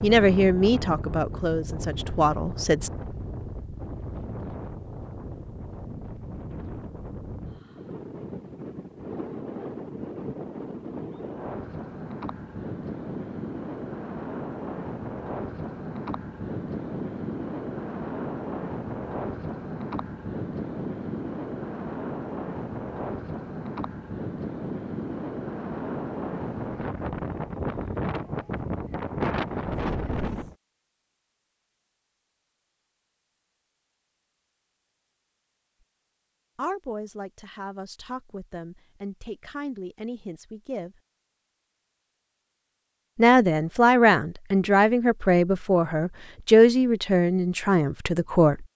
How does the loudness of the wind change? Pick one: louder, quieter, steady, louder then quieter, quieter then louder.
louder.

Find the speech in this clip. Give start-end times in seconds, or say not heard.
0.0-2.9, 36.5-41.0, 43.1-48.6.